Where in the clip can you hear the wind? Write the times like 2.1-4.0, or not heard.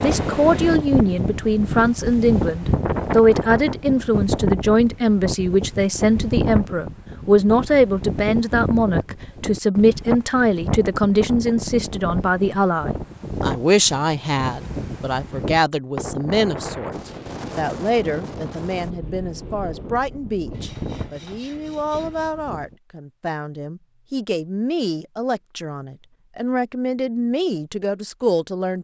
0.0-22.8.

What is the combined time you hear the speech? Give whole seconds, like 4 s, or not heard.
29 s.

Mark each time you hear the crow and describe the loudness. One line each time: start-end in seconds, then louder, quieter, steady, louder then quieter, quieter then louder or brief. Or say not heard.
not heard.